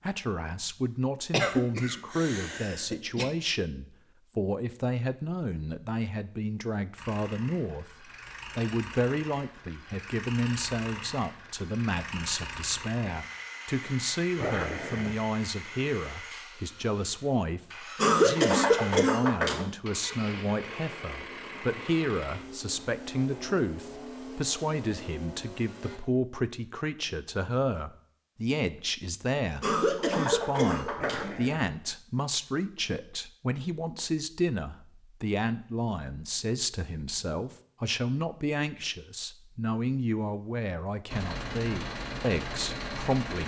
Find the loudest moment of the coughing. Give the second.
18 s.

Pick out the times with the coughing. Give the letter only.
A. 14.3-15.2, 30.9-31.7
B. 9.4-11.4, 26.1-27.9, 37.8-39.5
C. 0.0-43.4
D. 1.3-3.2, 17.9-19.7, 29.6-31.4
D.